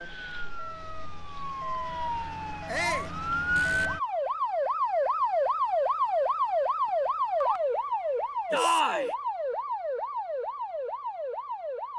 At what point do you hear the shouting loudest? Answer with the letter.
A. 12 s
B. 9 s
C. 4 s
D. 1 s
B.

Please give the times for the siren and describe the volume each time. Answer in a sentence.
You can hear the siren from 0.0 to 11.9 s, getting louder then quieter.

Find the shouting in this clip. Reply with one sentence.
The shouting can be heard from 2.6 to 3.1 s and from 8.5 to 9.1 s.